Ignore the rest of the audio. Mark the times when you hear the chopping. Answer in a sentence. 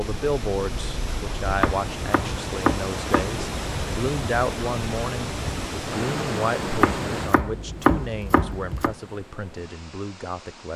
You can hear the chopping from 1.6 to 3.4 s and from 6.8 to 8.9 s.